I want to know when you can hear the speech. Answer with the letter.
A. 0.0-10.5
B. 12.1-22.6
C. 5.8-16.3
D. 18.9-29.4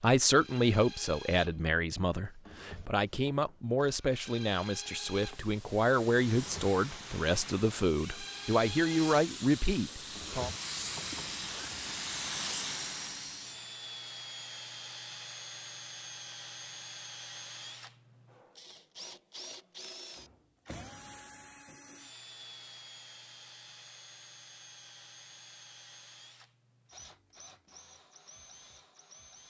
A.